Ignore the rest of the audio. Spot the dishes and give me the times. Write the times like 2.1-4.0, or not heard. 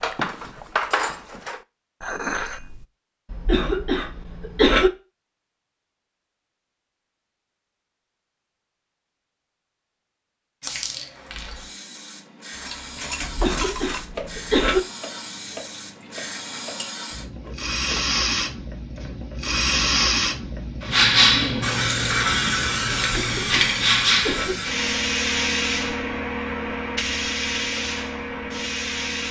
0.0-2.9, 12.5-18.1.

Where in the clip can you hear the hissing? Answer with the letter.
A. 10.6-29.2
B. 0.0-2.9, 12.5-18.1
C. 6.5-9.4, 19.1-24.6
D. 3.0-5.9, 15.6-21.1
A.